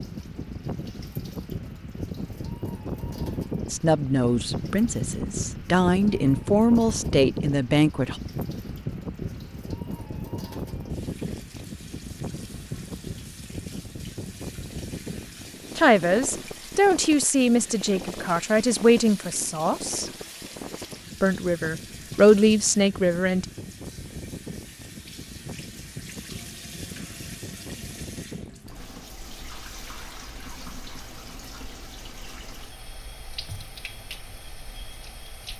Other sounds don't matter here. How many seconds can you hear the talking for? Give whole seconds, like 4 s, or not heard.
11 s.